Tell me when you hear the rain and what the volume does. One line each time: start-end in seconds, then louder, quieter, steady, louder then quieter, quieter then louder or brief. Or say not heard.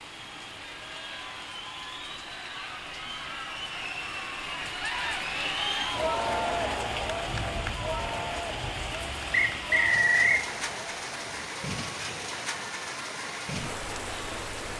0.0-14.7 louder.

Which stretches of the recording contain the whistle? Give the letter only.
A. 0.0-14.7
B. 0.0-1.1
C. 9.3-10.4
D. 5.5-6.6
C.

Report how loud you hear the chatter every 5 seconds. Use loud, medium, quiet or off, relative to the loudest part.
medium, loud, medium.